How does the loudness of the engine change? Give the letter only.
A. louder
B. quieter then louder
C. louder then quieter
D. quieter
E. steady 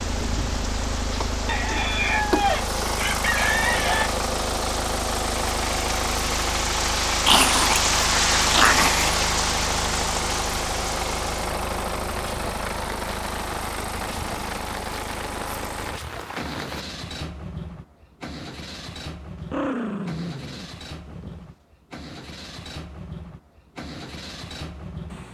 D.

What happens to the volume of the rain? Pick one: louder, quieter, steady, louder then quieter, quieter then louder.
louder then quieter.